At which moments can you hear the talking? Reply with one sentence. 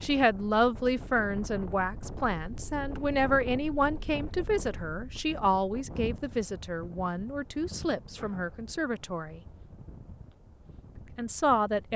You can hear the talking from 0.0 to 9.4 s and from 11.2 to 11.9 s.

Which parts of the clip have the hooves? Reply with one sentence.
You can't hear the hooves here.